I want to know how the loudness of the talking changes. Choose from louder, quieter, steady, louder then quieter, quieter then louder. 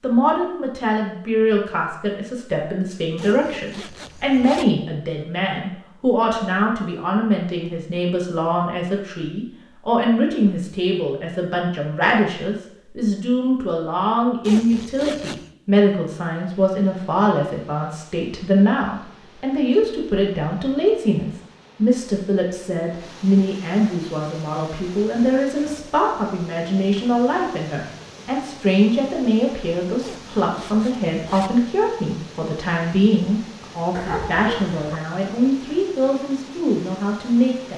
steady.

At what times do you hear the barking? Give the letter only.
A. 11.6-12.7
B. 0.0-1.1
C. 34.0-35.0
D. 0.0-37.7
C.